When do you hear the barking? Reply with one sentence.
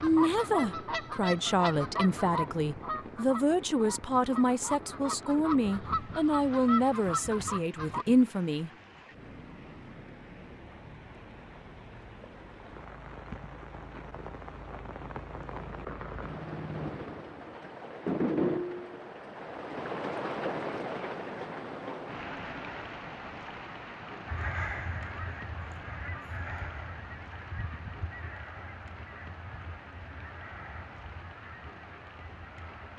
The barking can't be heard in this clip.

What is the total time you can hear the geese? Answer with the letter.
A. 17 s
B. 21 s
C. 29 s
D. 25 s
A.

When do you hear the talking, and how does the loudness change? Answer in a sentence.
The talking can be heard from 0.0 to 8.7 s, at a steady volume.